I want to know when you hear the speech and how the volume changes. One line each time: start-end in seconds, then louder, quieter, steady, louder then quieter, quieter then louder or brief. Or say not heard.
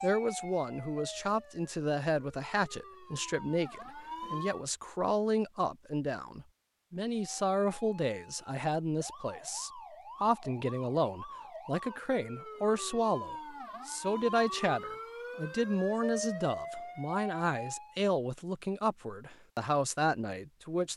0.0-20.9 steady.